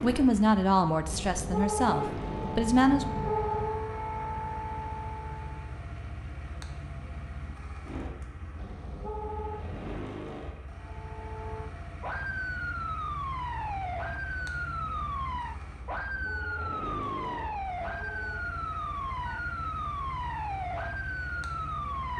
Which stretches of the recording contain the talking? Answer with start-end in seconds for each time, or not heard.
0.0-3.1.